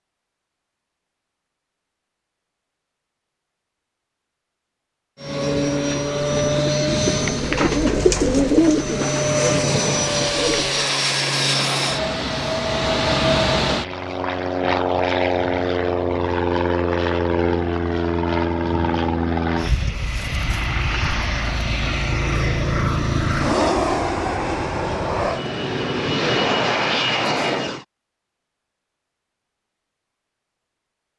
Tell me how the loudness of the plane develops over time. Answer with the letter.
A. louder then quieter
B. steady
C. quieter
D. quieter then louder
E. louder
B.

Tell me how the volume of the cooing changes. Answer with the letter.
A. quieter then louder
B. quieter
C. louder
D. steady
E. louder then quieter
E.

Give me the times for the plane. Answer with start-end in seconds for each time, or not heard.
5.2-27.9.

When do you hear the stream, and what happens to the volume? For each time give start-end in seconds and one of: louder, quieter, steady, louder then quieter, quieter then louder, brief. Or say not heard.
not heard.